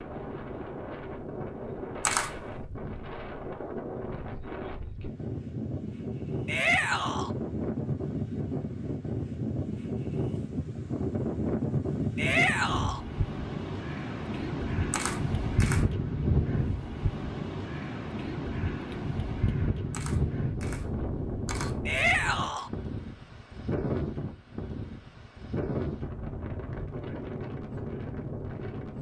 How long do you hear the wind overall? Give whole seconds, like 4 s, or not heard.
29 s.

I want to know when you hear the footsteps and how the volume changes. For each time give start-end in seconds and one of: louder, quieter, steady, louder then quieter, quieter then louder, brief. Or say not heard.
not heard.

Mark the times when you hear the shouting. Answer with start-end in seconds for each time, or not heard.
6.5-7.3, 12.2-13.0, 21.9-22.7.